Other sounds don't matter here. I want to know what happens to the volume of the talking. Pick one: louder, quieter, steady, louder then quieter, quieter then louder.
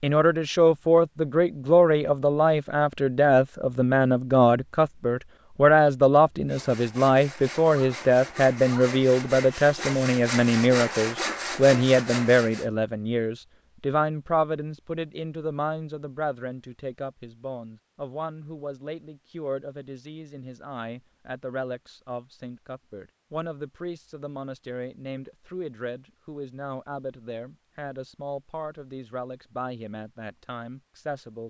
quieter.